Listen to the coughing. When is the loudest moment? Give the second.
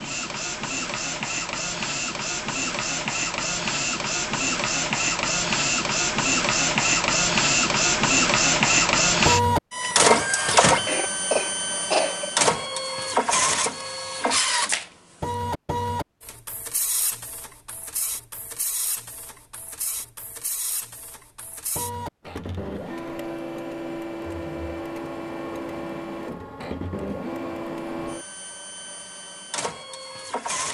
12 s.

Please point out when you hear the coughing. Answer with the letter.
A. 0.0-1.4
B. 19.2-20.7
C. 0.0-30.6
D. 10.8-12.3
D.